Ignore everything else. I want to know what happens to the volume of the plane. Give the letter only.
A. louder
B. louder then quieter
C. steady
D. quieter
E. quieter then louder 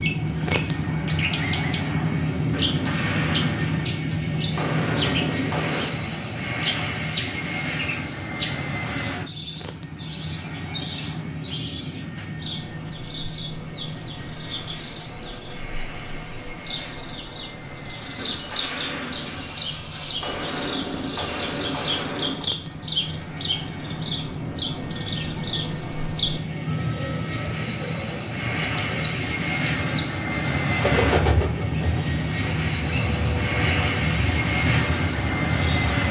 E.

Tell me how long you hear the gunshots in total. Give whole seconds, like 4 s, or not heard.
8 s.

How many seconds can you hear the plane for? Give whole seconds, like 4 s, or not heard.
36 s.